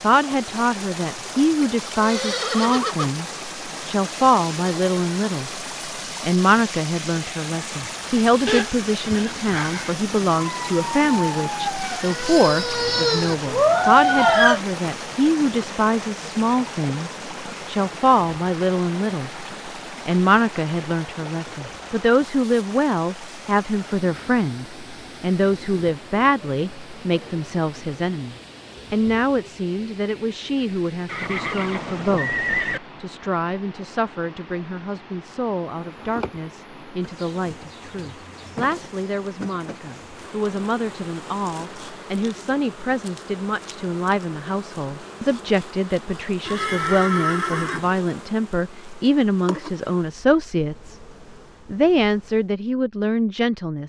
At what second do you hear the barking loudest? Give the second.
14 s.